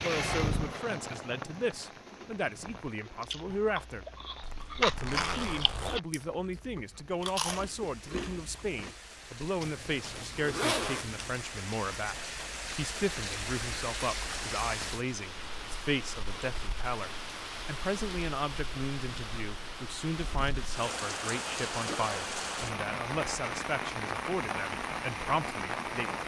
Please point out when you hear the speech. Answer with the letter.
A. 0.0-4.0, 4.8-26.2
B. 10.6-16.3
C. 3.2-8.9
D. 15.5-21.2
A.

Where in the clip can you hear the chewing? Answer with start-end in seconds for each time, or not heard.
3.2-8.9.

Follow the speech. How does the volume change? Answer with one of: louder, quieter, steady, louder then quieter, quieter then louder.
steady.